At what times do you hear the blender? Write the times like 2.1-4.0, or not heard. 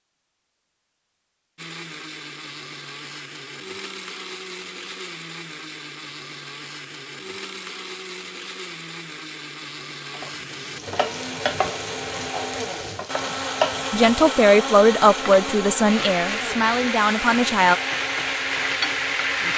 1.6-19.5.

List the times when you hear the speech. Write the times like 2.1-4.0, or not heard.
13.9-17.8.